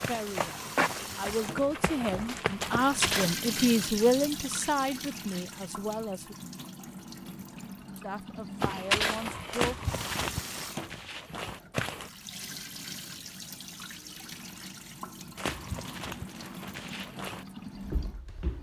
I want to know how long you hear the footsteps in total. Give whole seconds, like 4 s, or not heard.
10 s.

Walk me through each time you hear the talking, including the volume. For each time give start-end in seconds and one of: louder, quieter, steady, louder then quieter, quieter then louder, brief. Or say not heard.
0.1-6.3 louder then quieter
8.0-9.9 brief.